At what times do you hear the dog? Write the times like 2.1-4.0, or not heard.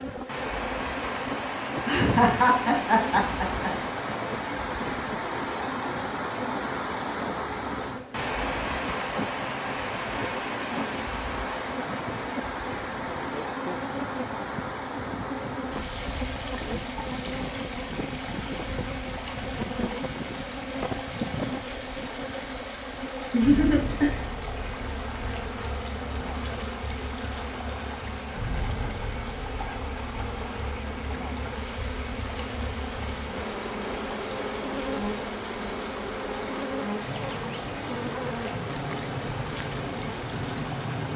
not heard.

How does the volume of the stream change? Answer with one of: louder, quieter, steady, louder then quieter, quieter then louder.
quieter.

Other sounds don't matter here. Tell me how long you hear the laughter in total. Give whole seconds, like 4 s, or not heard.
3 s.